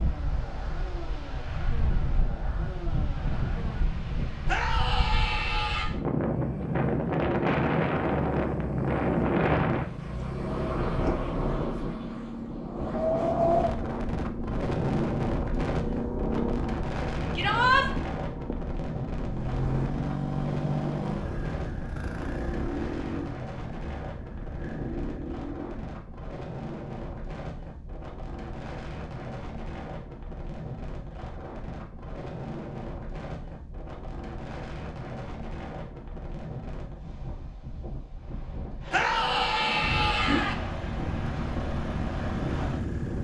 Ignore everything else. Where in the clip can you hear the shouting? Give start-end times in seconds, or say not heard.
4.5-5.8, 17.4-17.9, 38.9-40.5.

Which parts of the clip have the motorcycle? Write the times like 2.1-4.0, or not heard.
0.0-25.9, 39.8-43.1.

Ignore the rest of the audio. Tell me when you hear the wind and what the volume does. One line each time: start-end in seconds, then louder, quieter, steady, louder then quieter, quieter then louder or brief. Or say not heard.
0.0-43.1 quieter.